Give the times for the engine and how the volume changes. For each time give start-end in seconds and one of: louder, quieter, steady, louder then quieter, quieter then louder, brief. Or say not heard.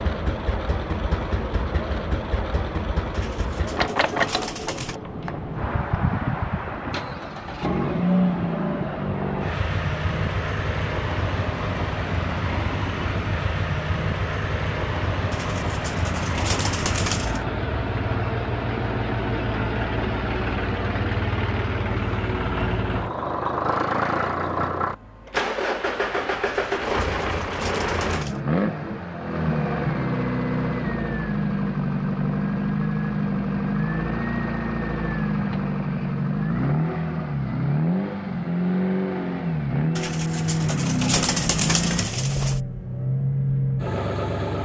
0.0-44.6 steady.